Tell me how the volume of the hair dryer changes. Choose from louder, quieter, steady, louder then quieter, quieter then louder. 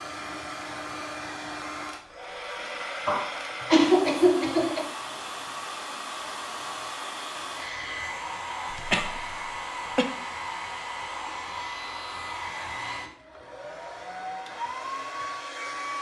steady.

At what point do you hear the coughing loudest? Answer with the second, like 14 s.
4 s.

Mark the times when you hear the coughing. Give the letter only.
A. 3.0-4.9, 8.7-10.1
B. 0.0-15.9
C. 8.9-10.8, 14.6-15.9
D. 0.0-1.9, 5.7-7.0
A.